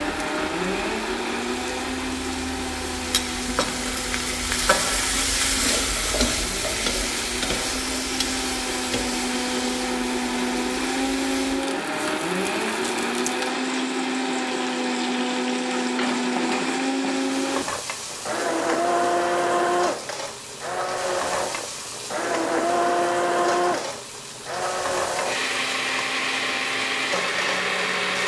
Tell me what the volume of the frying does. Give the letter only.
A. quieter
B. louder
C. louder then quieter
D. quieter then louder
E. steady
A.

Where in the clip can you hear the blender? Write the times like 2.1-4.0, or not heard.
0.0-28.2.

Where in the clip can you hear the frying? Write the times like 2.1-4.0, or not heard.
0.0-28.2.